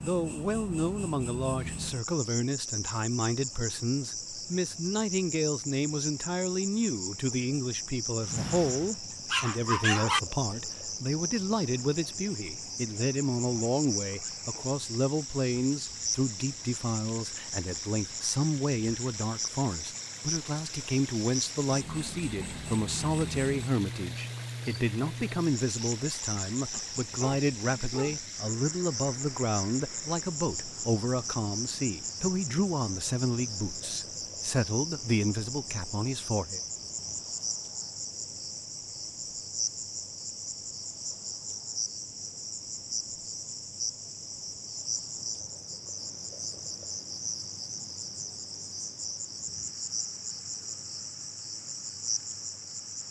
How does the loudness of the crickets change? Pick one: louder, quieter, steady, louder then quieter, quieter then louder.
steady.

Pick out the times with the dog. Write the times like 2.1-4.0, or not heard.
8.2-10.2, 26.7-28.2.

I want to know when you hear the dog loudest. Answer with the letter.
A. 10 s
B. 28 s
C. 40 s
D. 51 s
A.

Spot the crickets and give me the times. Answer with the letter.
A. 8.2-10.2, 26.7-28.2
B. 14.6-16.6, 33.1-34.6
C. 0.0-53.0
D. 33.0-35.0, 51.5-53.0
C.